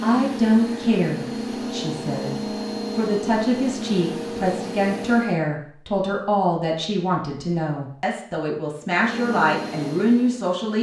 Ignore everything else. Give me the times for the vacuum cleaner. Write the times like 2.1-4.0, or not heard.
0.0-5.4, 8.9-10.7.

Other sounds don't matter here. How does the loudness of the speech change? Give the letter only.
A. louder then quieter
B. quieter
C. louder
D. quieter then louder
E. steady
E.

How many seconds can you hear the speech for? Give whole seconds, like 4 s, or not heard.
11 s.